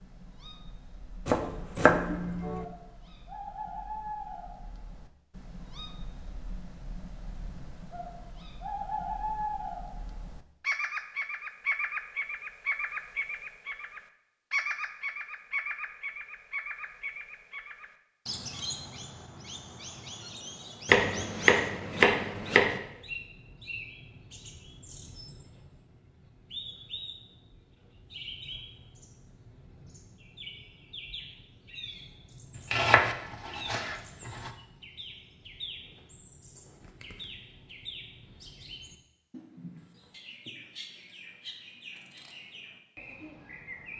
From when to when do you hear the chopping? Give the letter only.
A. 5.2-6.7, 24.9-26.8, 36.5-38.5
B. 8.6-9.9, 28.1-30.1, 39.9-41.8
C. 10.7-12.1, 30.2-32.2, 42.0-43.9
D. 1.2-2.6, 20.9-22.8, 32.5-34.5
D.